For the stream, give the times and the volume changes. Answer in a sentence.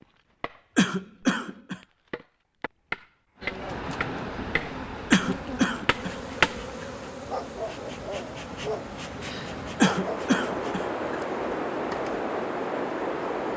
The stream can be heard from 3.4 to 13.5 s, getting quieter then louder.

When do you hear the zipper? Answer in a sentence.
The zipper can't be heard in this clip.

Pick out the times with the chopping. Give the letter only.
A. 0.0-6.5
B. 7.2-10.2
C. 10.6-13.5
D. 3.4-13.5
A.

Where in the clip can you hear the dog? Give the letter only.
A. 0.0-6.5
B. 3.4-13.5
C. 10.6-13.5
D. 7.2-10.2
D.